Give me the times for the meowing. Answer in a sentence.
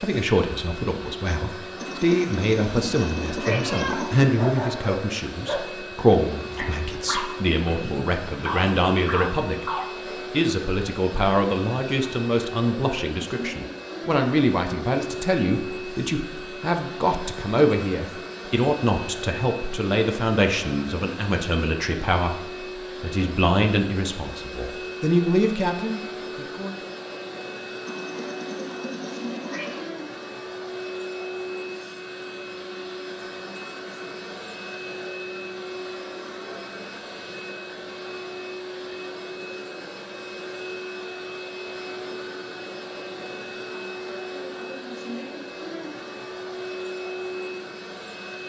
The meowing can be heard from 1.8 to 4.3 s and from 27.9 to 29.9 s.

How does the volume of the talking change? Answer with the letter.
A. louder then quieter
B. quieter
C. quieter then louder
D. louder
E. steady
E.